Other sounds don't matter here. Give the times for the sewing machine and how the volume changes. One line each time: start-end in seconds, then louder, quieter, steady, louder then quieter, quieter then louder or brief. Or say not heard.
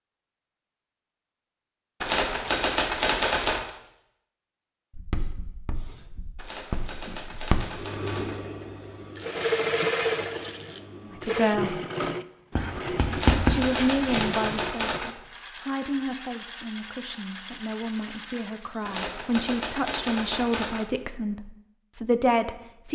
7.6-18.9 quieter.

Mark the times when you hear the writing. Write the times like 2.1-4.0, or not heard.
5.0-7.6, 12.6-14.3.